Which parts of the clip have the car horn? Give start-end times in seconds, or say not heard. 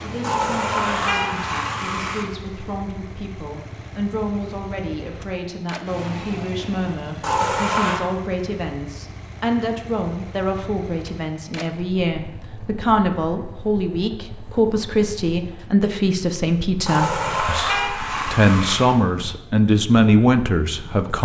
0.2-2.2, 7.2-8.0, 16.9-18.9.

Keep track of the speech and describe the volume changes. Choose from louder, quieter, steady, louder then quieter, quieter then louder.
louder.